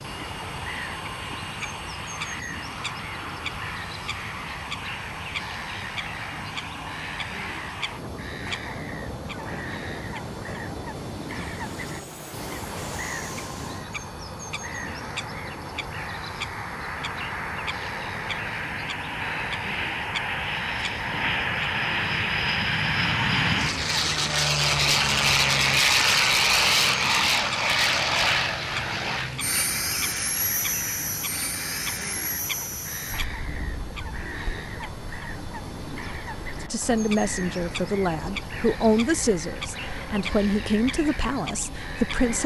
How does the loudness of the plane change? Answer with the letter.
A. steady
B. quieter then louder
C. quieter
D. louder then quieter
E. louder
D.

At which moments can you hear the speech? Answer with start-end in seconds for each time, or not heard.
36.6-42.4.